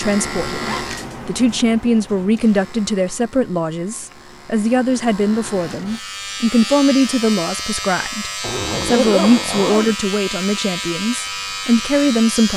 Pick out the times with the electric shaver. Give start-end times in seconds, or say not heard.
0.0-12.5.